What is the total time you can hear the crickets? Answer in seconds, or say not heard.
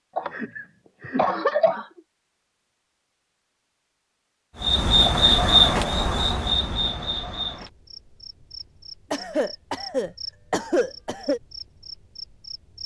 8 s.